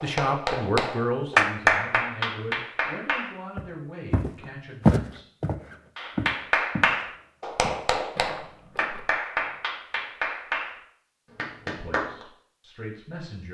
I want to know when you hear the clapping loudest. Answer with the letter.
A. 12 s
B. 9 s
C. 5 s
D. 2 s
D.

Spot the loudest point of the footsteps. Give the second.
5 s.